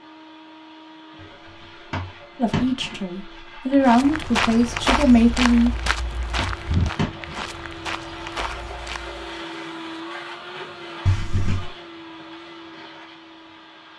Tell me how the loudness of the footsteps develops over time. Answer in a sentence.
The loudness of the footsteps goes down.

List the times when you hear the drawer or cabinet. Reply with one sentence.
You can hear the drawer or cabinet from 1.9 to 3.0 s, from 6.3 to 7.5 s and from 11.1 to 11.7 s.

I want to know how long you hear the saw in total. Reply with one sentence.
The saw can't be heard in this clip.